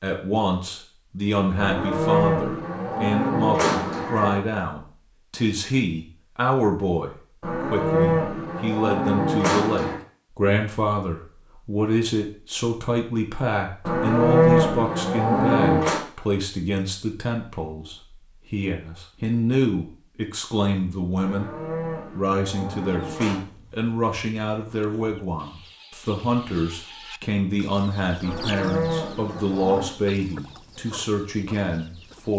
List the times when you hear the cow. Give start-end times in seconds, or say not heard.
1.6-4.4, 7.4-10.0, 13.8-16.1, 21.1-23.4, 28.2-29.9.